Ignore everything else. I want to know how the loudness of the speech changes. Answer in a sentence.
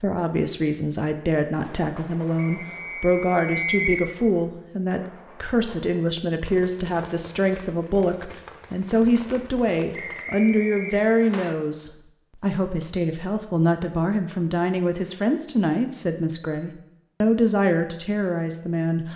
The loudness of the speech stays about the same.